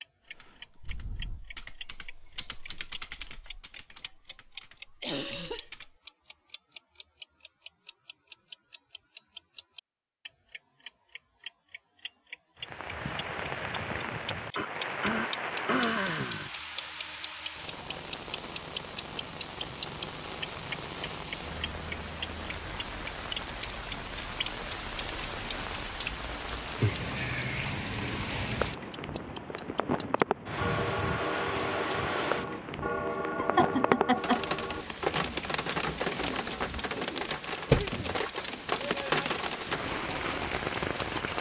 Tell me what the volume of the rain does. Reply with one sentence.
The loudness of the rain goes up.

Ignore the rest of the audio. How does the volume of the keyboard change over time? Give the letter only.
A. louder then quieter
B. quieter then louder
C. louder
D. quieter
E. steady
A.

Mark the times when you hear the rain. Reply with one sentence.
The rain can be heard from 12.6 to 41.3 s.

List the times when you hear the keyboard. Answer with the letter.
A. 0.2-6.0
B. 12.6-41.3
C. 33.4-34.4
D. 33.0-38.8
A.